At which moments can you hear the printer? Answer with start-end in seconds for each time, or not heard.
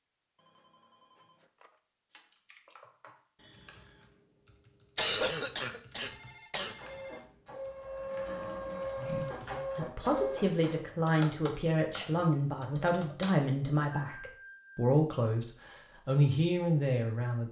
6.8-10.9.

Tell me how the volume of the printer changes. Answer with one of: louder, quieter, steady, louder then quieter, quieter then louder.
louder.